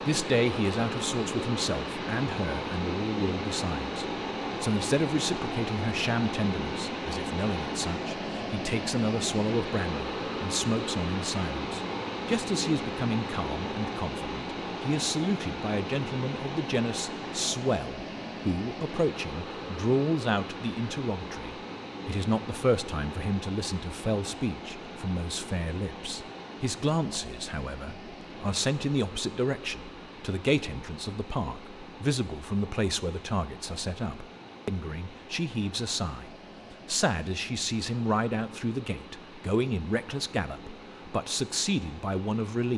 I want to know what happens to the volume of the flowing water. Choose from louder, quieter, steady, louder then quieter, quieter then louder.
quieter.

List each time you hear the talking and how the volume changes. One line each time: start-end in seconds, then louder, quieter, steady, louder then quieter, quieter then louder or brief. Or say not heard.
0.0-42.7 steady.